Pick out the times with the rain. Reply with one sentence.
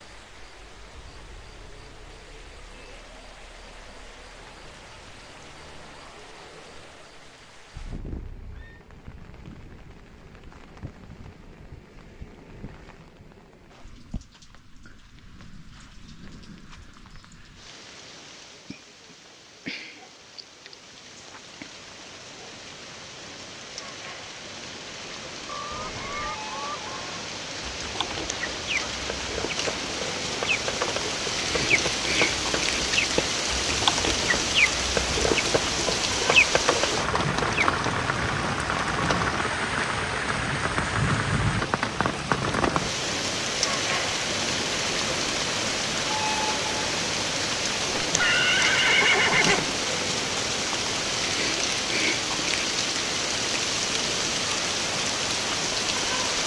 The rain can be heard from 0.0 to 56.4 s.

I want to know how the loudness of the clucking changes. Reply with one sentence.
The volume of the clucking goes up.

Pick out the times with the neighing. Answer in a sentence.
You can hear the neighing from 7.8 to 8.8 s, from 25.7 to 26.4 s and from 48.0 to 49.6 s.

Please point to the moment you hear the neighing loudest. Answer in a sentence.
The volume of the neighing peaks at 49 seconds.